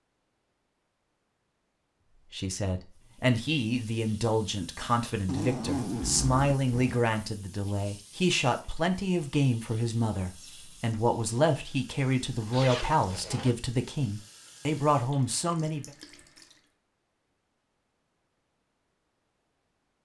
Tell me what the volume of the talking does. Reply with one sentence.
The volume of the talking stays about the same.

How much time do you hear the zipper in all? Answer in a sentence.
The zipper can be heard for 3 seconds in total.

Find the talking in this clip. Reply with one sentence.
You can hear the talking from 2.3 to 15.9 s.